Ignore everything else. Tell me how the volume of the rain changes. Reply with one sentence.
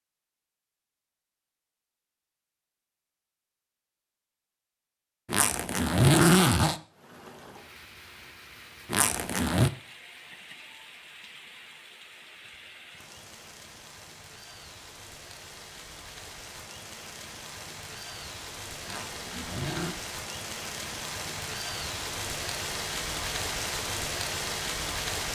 The loudness of the rain goes up.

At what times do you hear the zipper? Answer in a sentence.
You can hear the zipper from 5.2 to 6.8 s, from 8.9 to 9.7 s and from 18.9 to 19.9 s.